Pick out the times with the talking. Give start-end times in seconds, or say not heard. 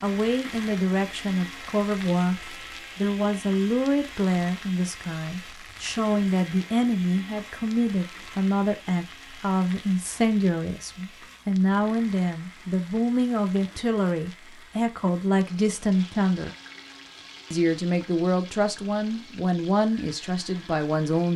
0.0-16.6, 17.5-21.3.